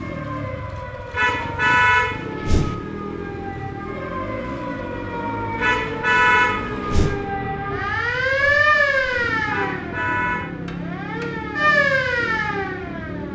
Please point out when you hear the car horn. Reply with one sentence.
You can hear the car horn from 1.1 to 2.8 s, from 5.5 to 7.2 s and from 9.4 to 10.5 s.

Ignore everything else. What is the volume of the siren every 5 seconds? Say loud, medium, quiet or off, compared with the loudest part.
medium, loud, loud.